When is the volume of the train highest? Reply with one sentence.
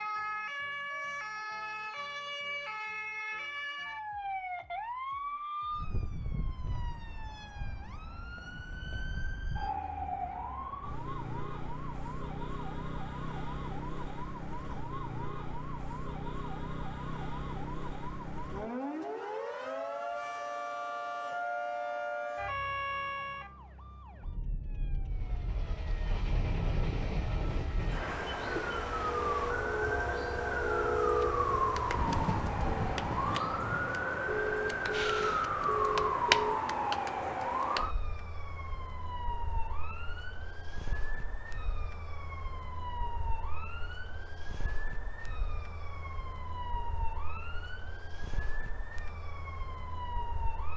The loudest moment of the train is at 31 seconds.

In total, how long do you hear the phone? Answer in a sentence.
You can hear the phone for 2 seconds altogether.